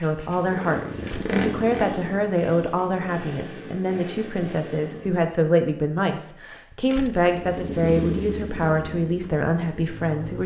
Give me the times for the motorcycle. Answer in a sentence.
You can hear the motorcycle from 0.0 to 5.2 s and from 7.2 to 10.4 s.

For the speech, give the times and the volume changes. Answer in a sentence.
You can hear the speech from 0.0 to 10.4 s, at a steady volume.